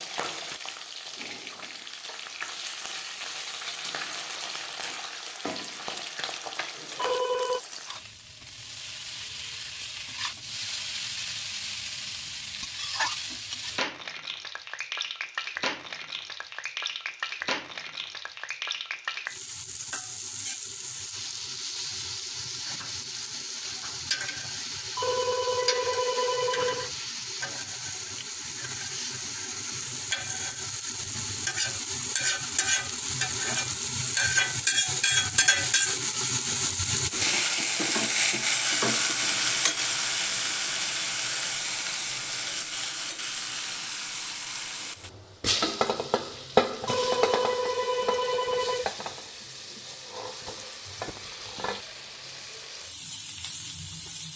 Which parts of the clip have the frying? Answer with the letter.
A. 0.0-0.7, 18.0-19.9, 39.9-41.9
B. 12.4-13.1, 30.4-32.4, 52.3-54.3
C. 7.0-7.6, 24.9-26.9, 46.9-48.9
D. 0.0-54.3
D.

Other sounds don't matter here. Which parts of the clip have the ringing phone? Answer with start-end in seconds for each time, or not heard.
7.0-7.6, 24.9-26.9, 46.9-48.9.